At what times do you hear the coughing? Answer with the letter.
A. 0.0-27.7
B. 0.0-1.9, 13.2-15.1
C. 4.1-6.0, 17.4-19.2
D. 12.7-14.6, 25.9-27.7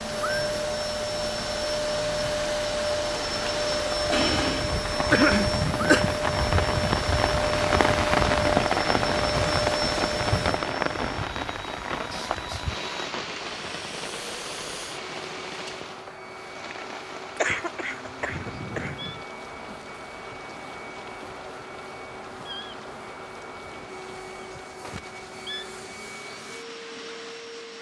C.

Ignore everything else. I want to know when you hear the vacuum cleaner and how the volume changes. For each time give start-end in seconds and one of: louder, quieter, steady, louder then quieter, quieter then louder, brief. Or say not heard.
0.0-27.7 quieter.